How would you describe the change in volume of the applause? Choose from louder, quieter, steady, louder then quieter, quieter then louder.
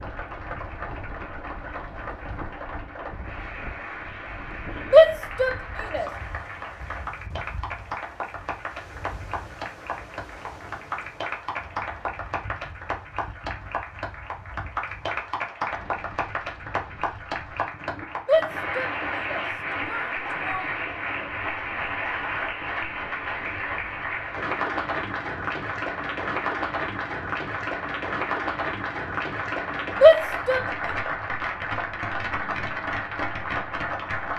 louder.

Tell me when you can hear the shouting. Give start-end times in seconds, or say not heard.
4.9-6.0, 18.2-20.6, 30.0-30.6.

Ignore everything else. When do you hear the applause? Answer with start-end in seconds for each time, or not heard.
0.0-34.3.